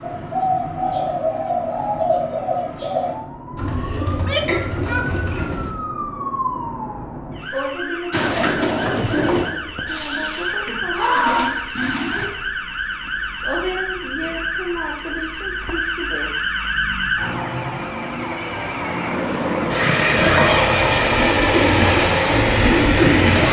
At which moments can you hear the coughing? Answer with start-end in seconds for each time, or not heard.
3.8-4.7.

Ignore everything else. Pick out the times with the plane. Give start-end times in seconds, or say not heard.
18.9-23.4.